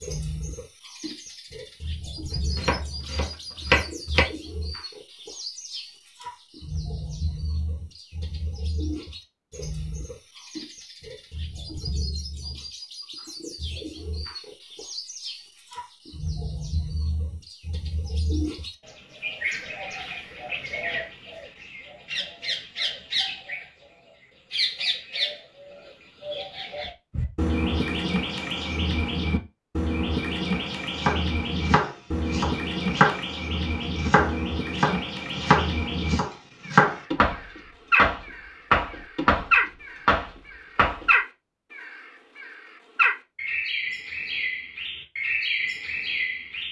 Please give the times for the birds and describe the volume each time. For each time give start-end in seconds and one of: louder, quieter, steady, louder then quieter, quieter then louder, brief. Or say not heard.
0.0-46.6 louder.